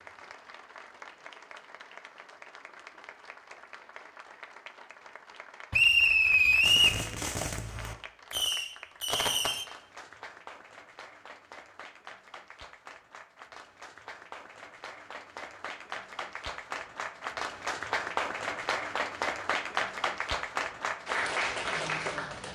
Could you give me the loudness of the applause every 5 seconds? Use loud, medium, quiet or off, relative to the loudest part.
quiet, quiet, quiet, loud, loud.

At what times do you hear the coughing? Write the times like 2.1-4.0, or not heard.
not heard.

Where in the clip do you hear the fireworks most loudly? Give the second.
9 s.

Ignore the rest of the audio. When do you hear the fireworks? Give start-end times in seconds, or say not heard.
6.6-9.7.